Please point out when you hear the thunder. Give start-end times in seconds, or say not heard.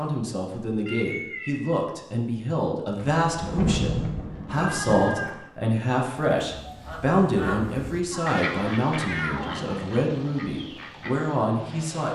3.0-5.3.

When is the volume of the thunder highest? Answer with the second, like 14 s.
4 s.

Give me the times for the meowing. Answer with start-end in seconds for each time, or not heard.
0.8-1.8, 4.6-5.5, 8.1-9.7.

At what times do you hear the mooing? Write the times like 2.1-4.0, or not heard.
not heard.